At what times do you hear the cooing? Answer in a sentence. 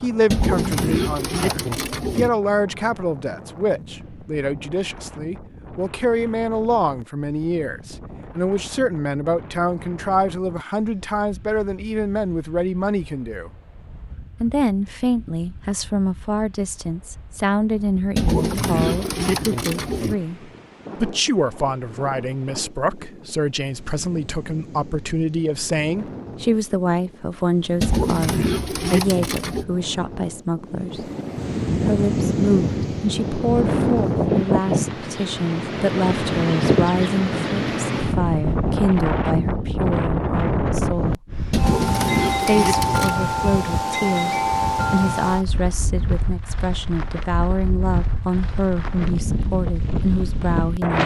You can hear the cooing from 0.3 to 2.3 s, from 18.1 to 20.1 s, from 27.8 to 29.6 s and from 41.5 to 43.1 s.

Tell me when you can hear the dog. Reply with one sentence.
You can't hear the dog here.